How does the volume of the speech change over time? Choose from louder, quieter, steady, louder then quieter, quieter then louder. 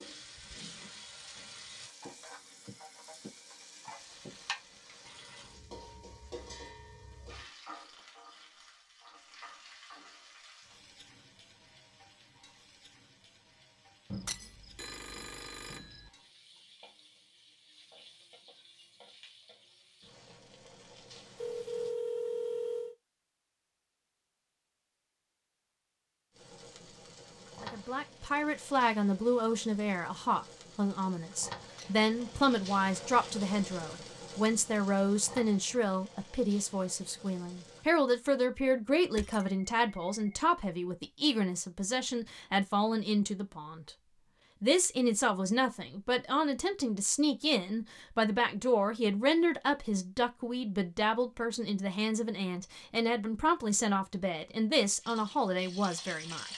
steady.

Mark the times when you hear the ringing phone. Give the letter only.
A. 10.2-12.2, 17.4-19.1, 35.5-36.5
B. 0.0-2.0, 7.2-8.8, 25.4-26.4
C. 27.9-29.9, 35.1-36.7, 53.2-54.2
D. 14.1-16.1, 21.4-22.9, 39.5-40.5
D.